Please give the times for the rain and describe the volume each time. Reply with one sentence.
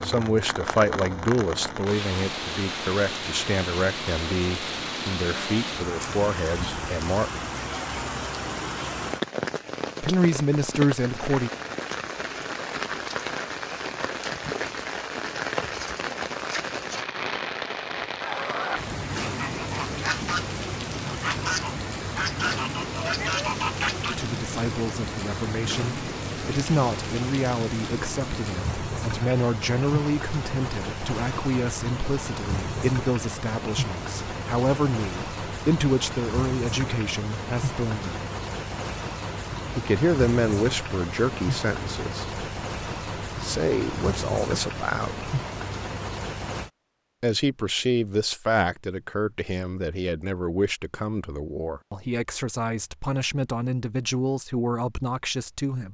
The rain can be heard from 0.0 to 46.7 s, at a steady volume.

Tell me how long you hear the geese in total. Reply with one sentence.
The geese can be heard for 6 seconds in total.